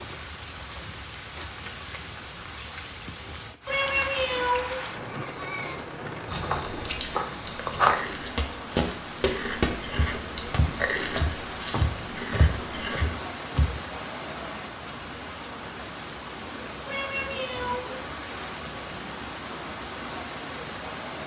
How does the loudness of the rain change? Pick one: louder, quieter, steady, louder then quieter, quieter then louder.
steady.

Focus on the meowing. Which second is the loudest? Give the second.
4 s.